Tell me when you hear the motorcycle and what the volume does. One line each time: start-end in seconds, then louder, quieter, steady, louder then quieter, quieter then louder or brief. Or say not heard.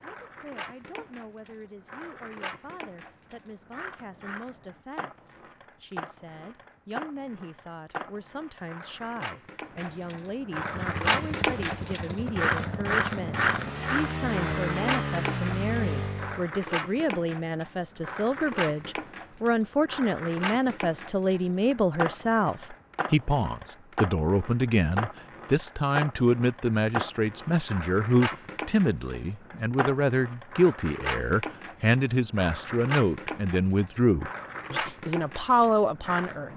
10.5-16.4 louder.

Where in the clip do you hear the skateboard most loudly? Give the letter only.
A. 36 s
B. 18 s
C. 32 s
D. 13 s
D.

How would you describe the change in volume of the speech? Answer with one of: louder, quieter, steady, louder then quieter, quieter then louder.
louder.